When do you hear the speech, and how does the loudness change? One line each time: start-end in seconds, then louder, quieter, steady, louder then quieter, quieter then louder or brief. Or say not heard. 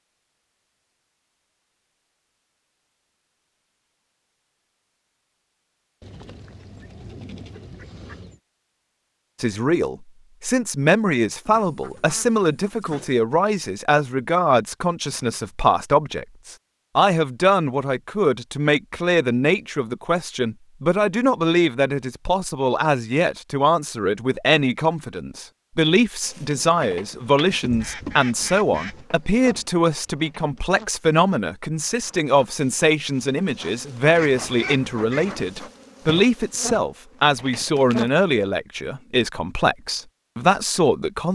9.4-41.3 steady.